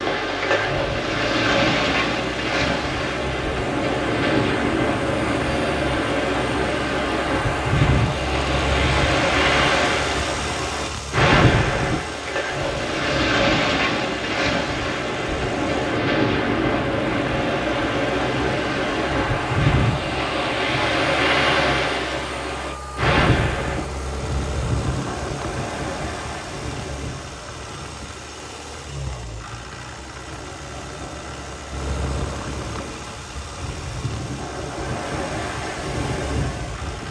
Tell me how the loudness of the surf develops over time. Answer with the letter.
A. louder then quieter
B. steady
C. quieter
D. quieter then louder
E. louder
C.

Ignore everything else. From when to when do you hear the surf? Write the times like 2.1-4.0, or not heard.
0.0-37.0.